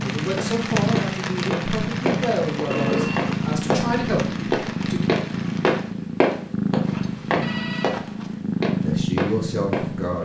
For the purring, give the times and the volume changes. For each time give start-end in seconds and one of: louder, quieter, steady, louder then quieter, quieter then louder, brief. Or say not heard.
0.0-10.2 steady.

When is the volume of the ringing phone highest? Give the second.
3 s.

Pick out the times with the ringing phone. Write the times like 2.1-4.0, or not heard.
2.7-3.4, 6.8-8.4.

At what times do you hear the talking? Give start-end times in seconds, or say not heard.
0.0-5.0, 8.8-10.2.